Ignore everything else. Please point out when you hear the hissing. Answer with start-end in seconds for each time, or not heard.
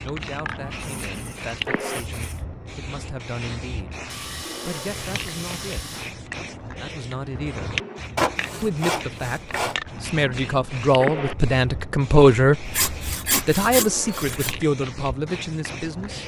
0.0-16.2.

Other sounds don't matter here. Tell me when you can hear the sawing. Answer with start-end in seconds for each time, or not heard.
0.7-2.5, 4.0-6.2, 8.2-9.8, 12.7-14.6.